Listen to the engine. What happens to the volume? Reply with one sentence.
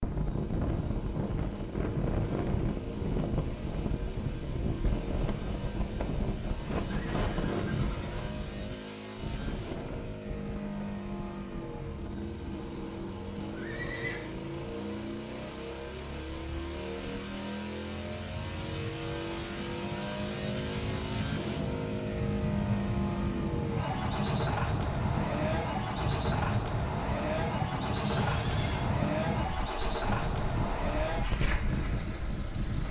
The volume of the engine goes up.